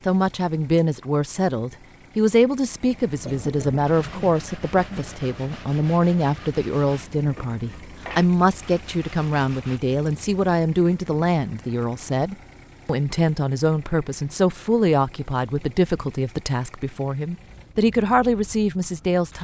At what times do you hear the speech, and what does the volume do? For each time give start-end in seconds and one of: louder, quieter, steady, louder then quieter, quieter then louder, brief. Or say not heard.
0.1-19.3 steady.